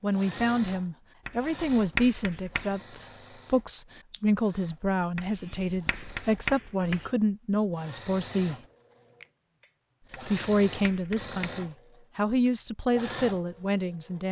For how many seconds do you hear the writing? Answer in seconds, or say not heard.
5 s.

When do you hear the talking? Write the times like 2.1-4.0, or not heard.
0.0-8.6, 10.2-14.2.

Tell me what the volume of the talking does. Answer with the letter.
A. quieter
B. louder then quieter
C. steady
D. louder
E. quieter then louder
C.